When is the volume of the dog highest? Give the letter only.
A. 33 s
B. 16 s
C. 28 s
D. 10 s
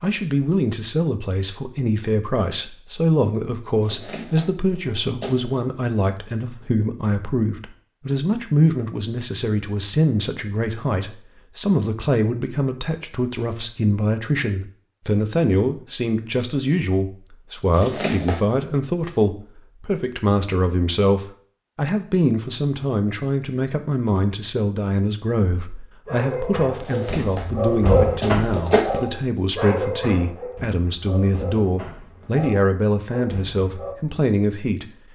C.